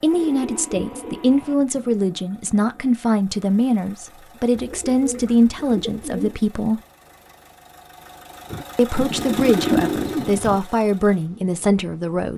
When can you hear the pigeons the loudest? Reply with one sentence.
The loudest moment of the pigeons is at 10 seconds.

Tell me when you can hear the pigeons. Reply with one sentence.
The pigeons can be heard from 0.1 to 1.6 s, from 4.5 to 6.4 s and from 8.5 to 10.6 s.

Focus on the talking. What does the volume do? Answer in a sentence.
The loudness of the talking stays about the same.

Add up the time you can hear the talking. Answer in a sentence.
The talking can be heard for 10 seconds in total.